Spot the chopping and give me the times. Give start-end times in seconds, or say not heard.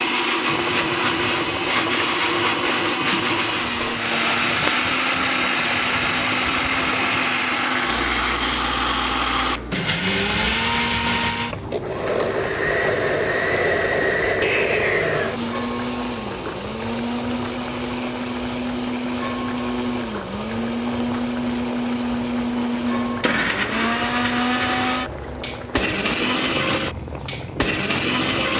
not heard.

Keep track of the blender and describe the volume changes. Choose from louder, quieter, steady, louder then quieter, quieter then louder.
steady.